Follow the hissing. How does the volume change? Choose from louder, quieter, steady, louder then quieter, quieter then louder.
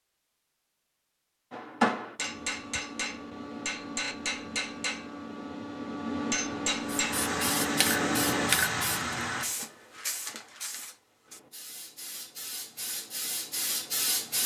quieter then louder.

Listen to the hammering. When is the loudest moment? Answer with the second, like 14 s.
2 s.